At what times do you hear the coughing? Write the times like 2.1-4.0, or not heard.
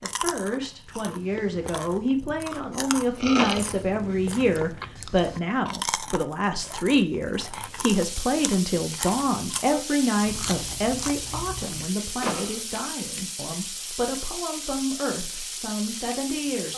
not heard.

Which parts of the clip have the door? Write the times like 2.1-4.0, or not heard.
3.4-4.6, 12.2-12.6.